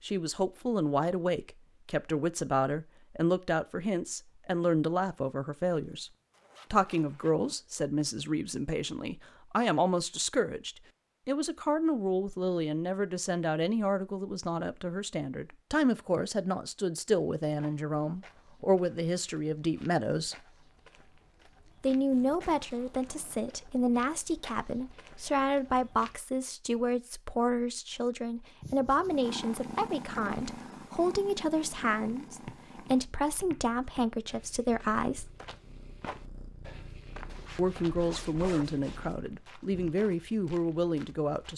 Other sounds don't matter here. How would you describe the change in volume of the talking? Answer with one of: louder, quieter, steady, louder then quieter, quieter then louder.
steady.